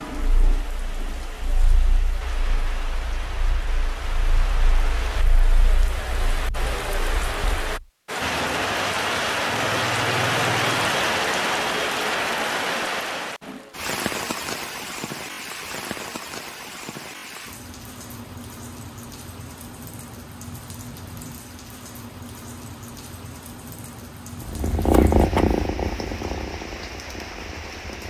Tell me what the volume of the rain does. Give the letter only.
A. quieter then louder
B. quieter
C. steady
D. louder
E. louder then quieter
E.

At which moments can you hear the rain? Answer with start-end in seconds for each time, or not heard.
0.0-28.0.